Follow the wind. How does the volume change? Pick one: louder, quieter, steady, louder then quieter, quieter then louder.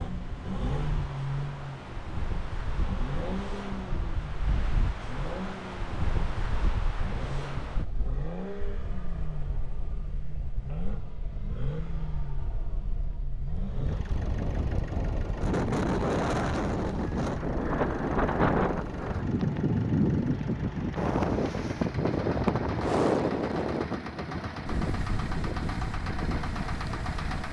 louder.